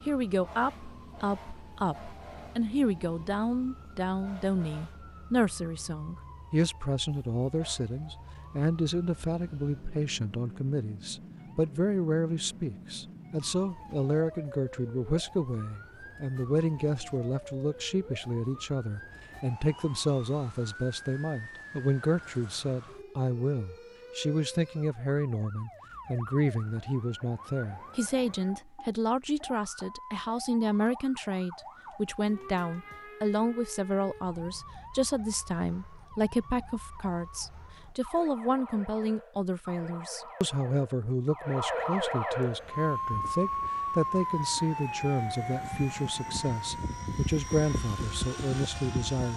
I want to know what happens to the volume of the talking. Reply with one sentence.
The volume of the talking stays about the same.